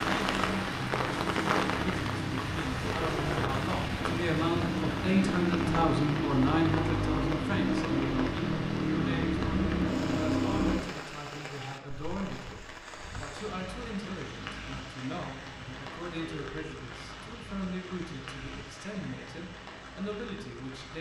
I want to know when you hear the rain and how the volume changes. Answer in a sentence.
The rain can be heard from 0.0 to 20.9 s, getting quieter.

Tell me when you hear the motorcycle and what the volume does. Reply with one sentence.
The motorcycle can be heard from 0.0 to 10.8 s, getting louder.